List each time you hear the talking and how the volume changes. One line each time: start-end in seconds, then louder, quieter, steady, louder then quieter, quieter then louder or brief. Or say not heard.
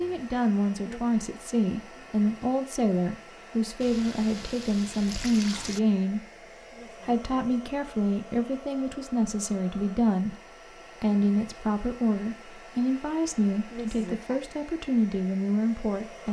0.0-16.2 steady.